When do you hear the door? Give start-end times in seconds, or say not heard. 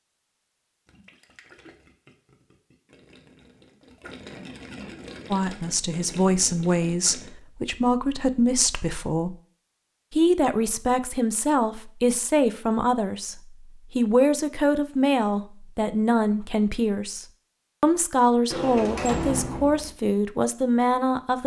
18.5-19.9.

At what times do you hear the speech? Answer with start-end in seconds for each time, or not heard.
5.3-9.3, 10.1-21.4.